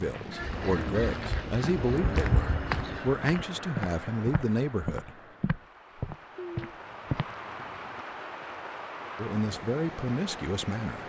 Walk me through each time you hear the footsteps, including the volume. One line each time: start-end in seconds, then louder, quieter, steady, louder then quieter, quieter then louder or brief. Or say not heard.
0.4-7.3 louder.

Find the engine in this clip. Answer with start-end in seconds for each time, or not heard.
0.0-3.2.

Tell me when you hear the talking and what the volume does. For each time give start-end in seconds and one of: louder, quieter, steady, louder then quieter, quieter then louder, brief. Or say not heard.
0.0-5.2 quieter then louder
9.2-11.0 brief.